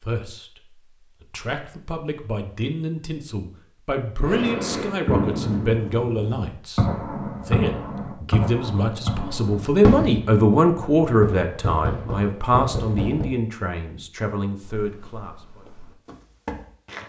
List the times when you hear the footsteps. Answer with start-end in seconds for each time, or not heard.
14.7-17.0.